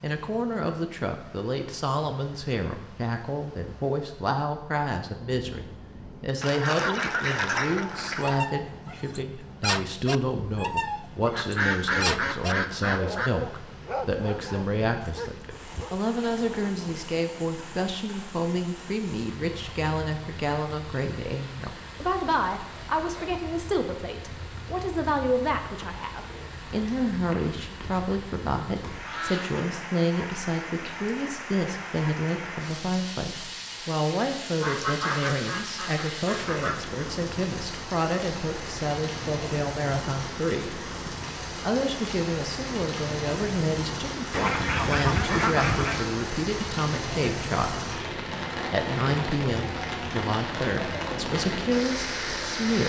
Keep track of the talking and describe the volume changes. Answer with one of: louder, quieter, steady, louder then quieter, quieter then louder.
steady.